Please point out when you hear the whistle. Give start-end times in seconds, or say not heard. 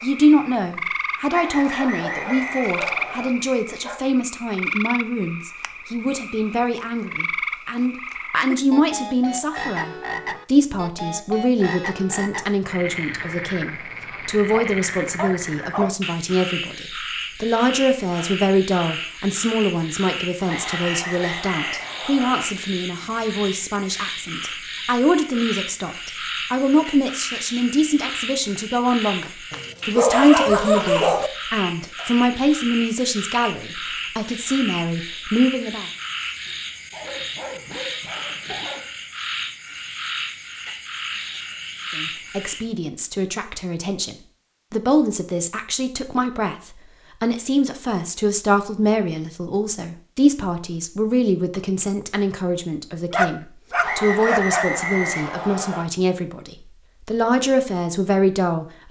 1.3-3.3, 20.4-22.4, 53.8-55.9.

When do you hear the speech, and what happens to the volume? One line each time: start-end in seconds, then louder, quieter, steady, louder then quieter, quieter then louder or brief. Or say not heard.
0.0-35.9 steady
42.0-58.8 steady.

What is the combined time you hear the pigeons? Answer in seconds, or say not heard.
not heard.